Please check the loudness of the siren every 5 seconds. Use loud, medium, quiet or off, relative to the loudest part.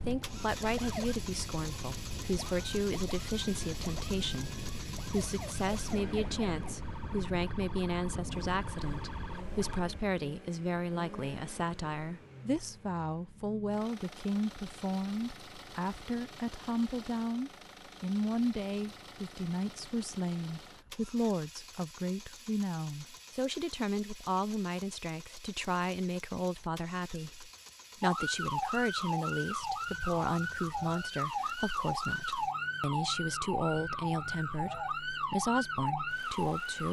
medium, medium, off, off, off, loud, loud, loud.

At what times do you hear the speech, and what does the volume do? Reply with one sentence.
The speech can be heard from 0.1 to 36.8 s, at a steady volume.